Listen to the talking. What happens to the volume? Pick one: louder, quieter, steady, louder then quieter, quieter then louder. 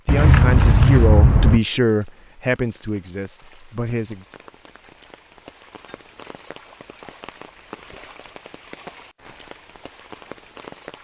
quieter.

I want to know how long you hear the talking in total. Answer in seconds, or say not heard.
4 s.